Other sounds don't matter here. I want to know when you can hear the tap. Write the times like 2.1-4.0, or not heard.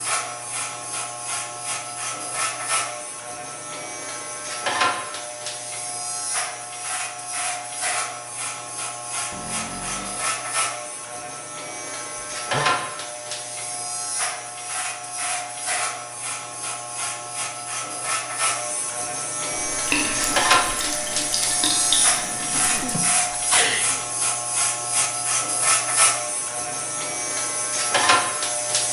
19.6-22.9.